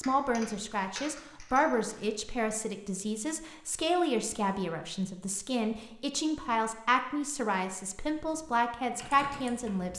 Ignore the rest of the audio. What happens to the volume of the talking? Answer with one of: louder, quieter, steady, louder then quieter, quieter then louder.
steady.